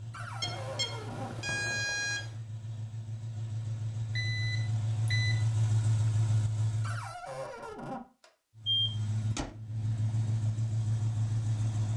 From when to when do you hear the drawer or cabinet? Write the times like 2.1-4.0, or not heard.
0.1-1.3, 6.8-8.0.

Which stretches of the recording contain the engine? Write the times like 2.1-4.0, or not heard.
0.0-7.2, 8.6-11.9.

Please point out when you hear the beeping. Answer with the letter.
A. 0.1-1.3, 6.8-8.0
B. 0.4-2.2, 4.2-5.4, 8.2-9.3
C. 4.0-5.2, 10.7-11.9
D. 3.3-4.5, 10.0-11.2
B.